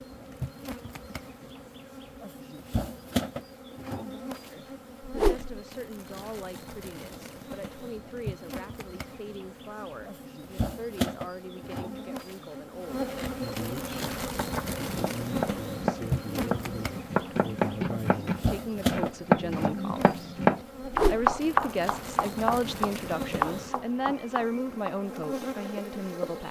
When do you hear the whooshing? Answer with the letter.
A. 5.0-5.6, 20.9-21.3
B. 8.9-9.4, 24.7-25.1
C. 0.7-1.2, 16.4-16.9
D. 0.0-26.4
A.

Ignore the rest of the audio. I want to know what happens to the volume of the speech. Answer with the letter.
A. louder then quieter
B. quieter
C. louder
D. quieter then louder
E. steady
C.